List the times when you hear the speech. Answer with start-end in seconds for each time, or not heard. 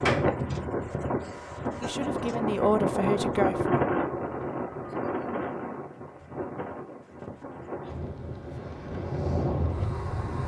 1.8-3.8.